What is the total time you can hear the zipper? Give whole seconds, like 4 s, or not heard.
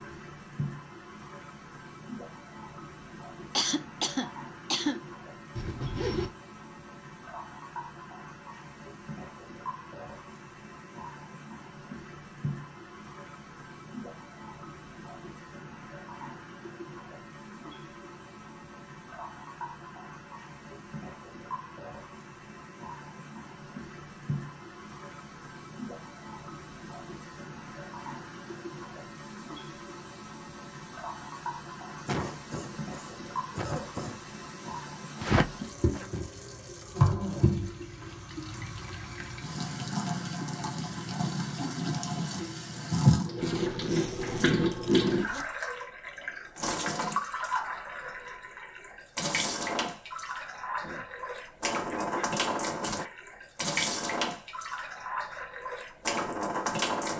4 s.